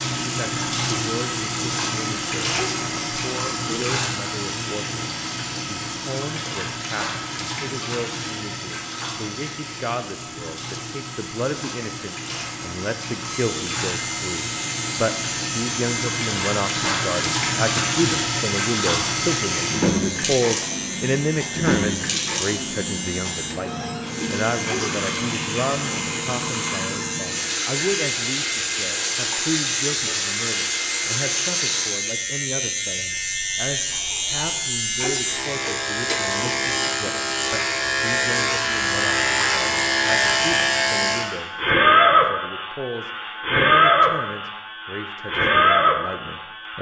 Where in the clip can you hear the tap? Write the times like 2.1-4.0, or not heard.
0.0-31.9.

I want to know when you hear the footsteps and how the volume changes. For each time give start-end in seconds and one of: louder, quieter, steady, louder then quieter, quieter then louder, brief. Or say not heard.
not heard.